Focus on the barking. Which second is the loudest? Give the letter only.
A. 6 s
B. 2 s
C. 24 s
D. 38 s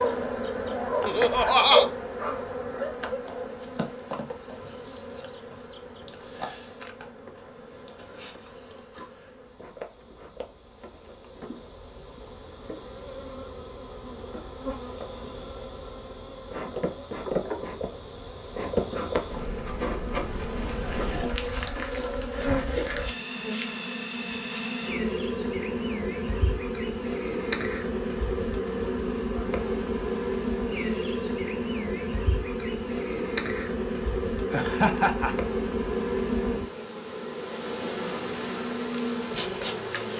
B.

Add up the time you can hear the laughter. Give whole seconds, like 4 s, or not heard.
2 s.